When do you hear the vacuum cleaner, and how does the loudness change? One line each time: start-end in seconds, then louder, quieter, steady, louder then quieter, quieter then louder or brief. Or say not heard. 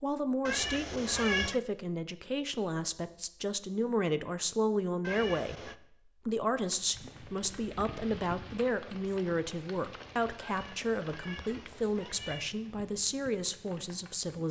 not heard.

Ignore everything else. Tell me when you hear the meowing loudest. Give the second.
1 s.